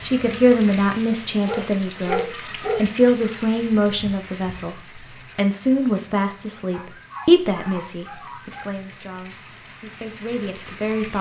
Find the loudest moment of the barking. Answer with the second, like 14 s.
2 s.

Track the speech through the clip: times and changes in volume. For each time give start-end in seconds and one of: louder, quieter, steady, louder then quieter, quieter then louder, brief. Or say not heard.
0.0-11.1 quieter.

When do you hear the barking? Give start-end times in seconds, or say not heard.
1.4-2.9, 6.7-8.8.